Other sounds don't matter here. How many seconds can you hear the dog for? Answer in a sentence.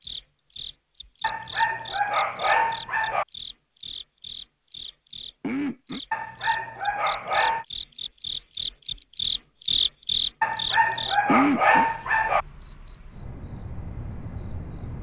You can hear the dog for 6 seconds altogether.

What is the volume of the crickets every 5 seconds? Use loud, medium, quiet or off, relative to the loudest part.
medium, loud, loud.